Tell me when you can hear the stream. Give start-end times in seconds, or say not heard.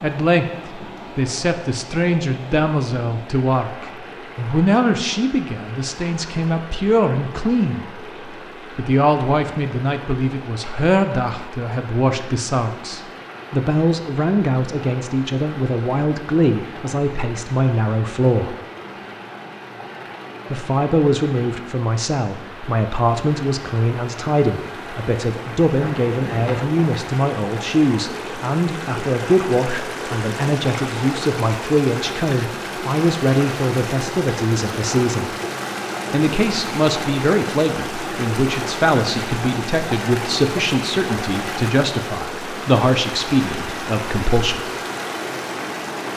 0.0-46.1.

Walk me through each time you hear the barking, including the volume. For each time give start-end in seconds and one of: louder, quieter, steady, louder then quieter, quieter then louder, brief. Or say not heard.
not heard.